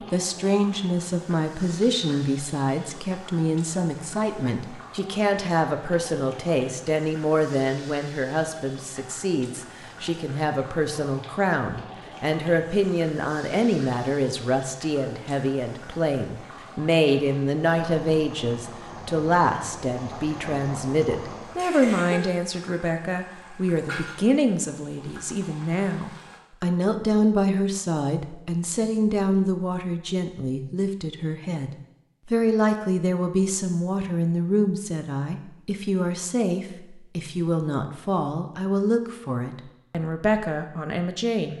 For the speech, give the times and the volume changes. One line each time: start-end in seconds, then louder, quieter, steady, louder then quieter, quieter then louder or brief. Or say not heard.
0.1-41.5 steady.